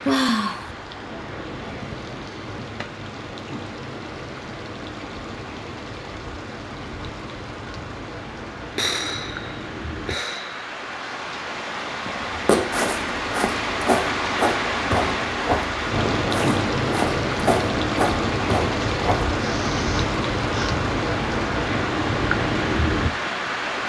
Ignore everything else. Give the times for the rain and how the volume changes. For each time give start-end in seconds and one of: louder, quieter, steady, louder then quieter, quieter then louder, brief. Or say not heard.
0.0-23.8 louder.